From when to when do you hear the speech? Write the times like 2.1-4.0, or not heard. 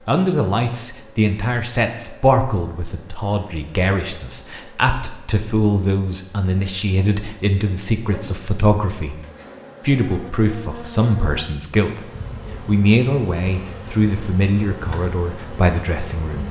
0.1-9.2, 9.8-16.4.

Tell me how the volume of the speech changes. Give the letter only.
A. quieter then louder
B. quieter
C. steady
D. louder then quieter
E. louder
C.